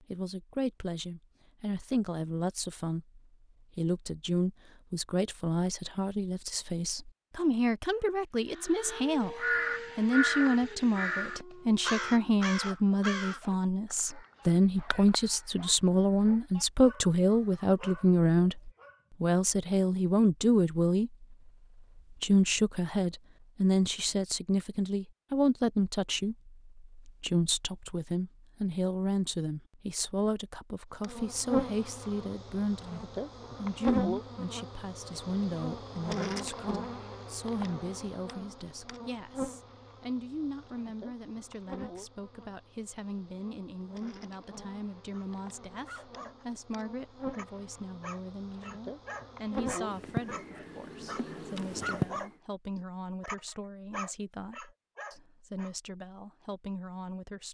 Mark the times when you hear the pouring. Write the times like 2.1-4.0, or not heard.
not heard.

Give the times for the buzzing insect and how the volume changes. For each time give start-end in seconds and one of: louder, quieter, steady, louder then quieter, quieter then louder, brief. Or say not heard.
31.0-52.3 quieter then louder.